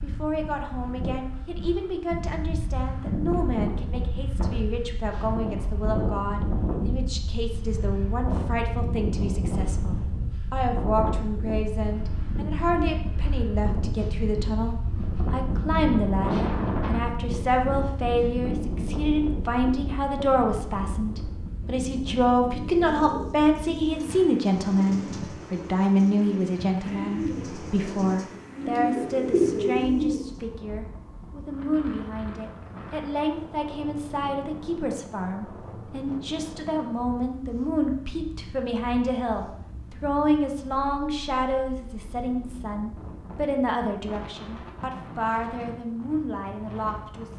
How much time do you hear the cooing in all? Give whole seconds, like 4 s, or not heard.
8 s.